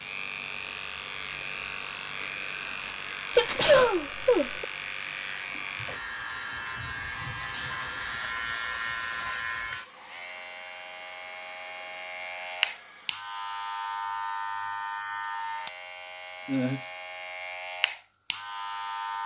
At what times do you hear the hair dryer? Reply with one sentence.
The hair dryer can be heard from 0.2 to 13.2 s.